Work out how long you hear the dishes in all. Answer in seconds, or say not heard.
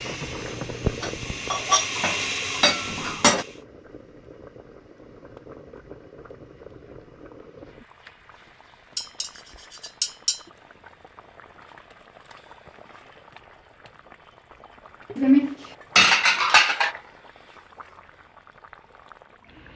6 s.